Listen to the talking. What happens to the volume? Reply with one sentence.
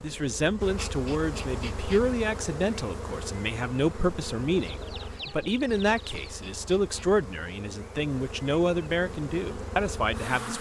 The volume of the talking stays about the same.